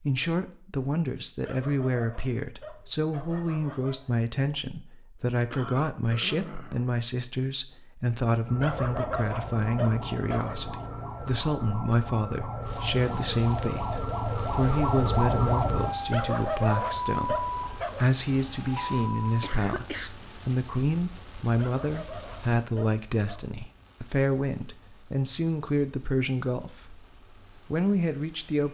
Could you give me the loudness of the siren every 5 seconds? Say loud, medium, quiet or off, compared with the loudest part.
off, medium, loud, loud, off, off.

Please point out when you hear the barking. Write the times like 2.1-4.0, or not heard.
1.4-4.3, 8.6-10.6, 16.1-18.1, 21.6-23.5.